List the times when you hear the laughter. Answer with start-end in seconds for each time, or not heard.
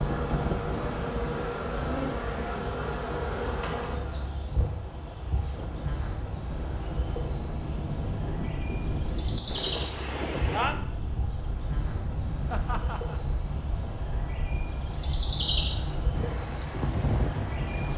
12.5-13.2.